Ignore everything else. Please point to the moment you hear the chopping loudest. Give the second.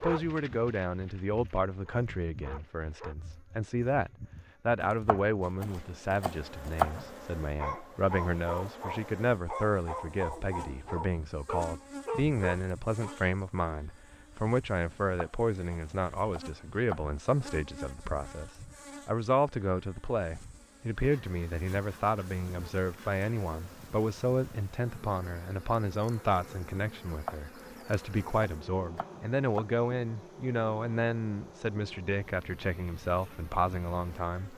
7 s.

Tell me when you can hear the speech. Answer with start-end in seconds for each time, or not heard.
0.0-34.5.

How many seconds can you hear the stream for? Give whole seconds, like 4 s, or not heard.
not heard.